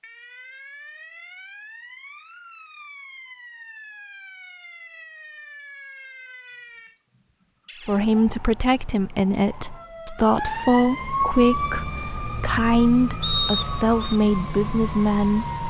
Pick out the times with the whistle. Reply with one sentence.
You can hear the whistle from 13.2 to 14.2 s.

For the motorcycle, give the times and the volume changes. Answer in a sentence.
You can't hear the motorcycle here.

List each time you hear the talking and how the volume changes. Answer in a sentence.
You can hear the talking from 7.8 to 15.5 s, at a steady volume.